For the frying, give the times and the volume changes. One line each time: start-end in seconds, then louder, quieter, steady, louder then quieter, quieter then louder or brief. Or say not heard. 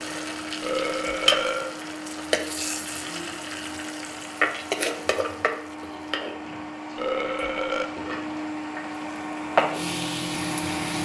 0.0-10.9 quieter then louder.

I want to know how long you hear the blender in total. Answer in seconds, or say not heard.
11 s.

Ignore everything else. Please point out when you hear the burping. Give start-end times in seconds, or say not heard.
0.6-1.8, 7.0-7.9.